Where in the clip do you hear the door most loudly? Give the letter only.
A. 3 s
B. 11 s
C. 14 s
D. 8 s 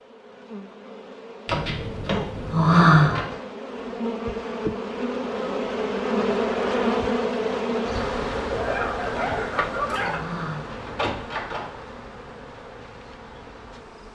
A.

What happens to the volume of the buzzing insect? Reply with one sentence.
The loudness of the buzzing insect goes up, then down.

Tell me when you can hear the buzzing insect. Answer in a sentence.
The buzzing insect can be heard from 0.0 to 14.1 s.